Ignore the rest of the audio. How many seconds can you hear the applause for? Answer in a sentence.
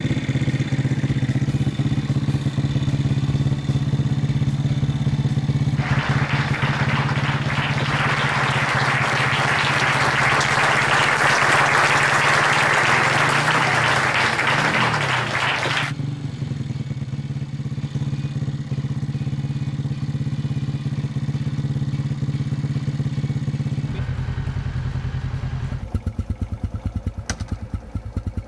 You can hear the applause for 10 seconds altogether.